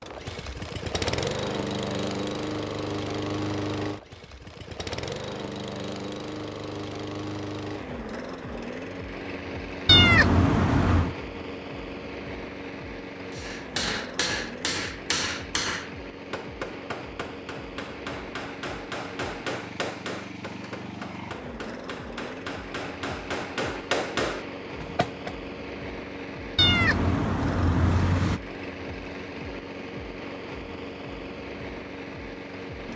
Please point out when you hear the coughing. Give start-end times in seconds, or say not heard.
not heard.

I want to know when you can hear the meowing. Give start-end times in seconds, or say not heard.
9.8-11.2, 26.6-28.4.